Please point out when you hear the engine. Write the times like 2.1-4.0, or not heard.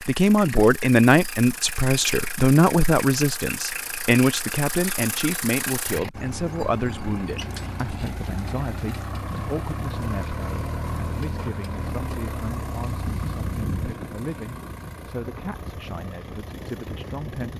0.0-17.5.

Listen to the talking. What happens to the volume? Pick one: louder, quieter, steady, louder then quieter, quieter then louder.
quieter.